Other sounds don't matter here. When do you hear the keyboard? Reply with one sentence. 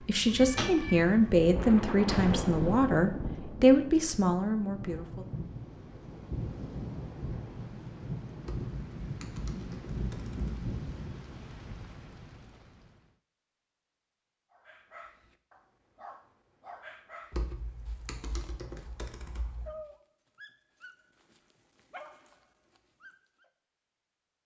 You can hear the keyboard from 8.4 to 10.5 s and from 17.3 to 19.8 s.